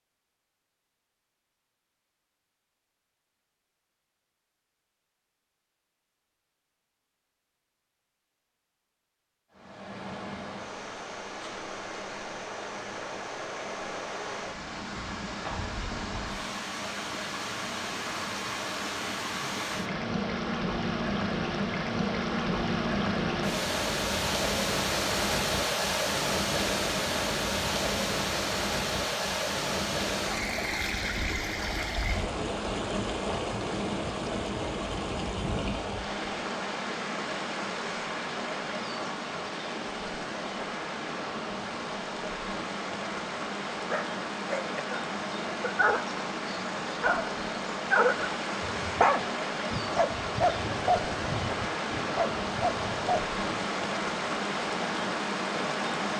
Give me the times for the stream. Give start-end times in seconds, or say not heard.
9.5-56.1.